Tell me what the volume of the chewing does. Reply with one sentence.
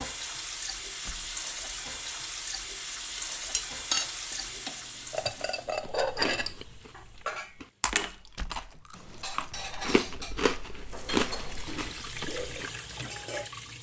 The loudness of the chewing goes up.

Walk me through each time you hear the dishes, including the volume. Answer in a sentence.
The dishes can be heard from 3.1 to 13.5 s, getting quieter.